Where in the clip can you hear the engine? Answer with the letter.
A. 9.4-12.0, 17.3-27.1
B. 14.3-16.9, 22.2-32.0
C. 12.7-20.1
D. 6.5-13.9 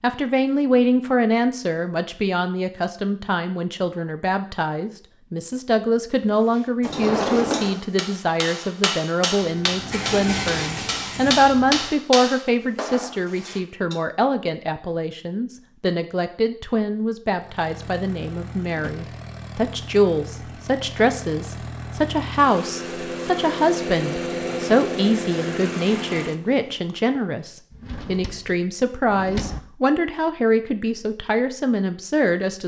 A.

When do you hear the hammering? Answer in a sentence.
The hammering can be heard from 6.5 to 13.9 s.